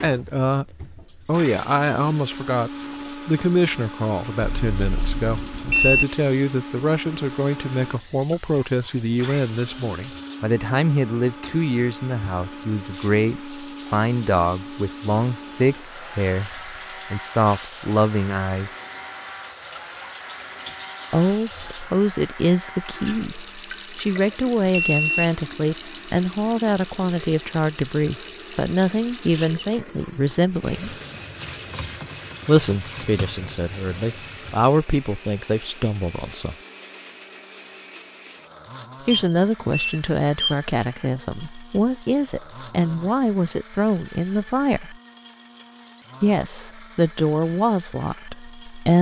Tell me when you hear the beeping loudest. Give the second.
6 s.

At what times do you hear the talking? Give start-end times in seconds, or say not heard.
0.0-18.7, 21.1-30.9, 32.5-36.5, 39.0-45.0, 46.2-48.9.